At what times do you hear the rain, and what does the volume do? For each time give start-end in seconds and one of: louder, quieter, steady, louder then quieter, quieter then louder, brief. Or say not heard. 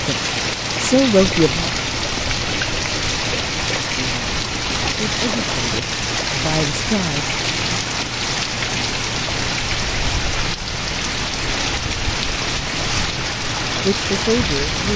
0.0-14.9 steady.